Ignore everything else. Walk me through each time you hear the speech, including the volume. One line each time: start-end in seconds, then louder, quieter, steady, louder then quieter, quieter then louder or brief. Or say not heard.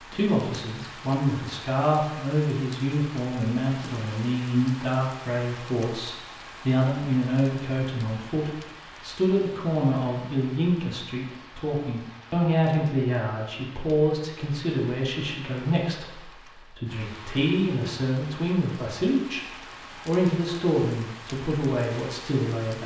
0.1-22.8 steady.